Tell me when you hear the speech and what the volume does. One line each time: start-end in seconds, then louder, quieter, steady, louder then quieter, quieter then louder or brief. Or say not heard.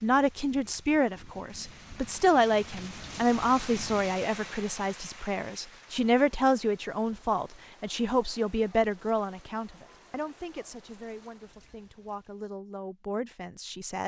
0.0-14.0 quieter.